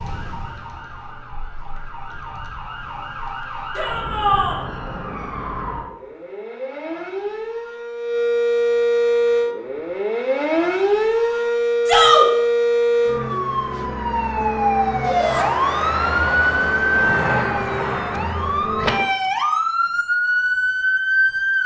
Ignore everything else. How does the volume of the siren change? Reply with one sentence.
The loudness of the siren goes up.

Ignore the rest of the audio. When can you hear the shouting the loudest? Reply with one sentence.
The loudest moment of the shouting is at 12 seconds.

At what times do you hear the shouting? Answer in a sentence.
The shouting can be heard from 3.8 to 4.6 s, from 11.8 to 12.2 s and from 15.0 to 15.4 s.